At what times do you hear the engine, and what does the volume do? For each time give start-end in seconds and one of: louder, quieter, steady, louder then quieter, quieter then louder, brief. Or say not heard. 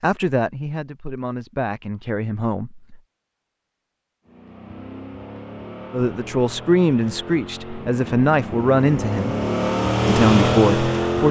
4.2-11.2 louder.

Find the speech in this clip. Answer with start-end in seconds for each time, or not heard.
0.0-3.0, 5.9-9.3, 10.1-11.2.